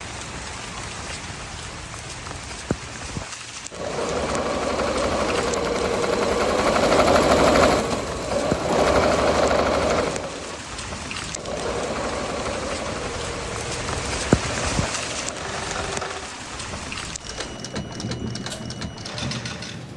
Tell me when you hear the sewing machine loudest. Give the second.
7 s.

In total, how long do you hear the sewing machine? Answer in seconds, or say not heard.
16 s.